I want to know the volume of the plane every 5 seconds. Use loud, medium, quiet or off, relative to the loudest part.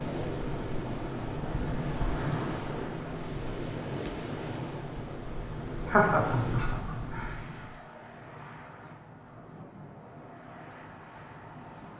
loud, medium, medium.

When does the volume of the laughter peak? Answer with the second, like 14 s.
6 s.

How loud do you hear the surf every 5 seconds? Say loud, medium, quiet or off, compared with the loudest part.
loud, loud, off.